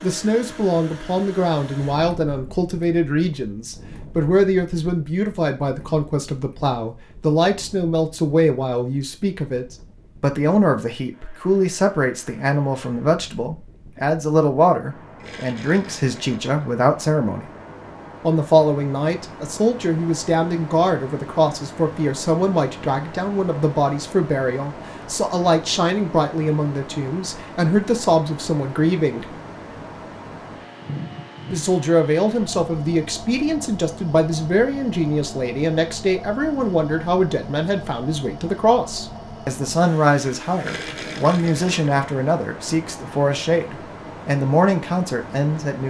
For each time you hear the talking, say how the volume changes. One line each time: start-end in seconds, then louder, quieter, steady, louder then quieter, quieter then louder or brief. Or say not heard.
0.0-17.4 steady
18.2-29.4 steady
31.5-45.8 steady.